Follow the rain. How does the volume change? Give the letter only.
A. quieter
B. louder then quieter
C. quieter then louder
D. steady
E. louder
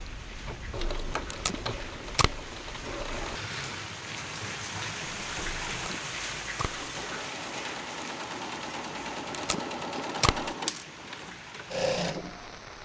B.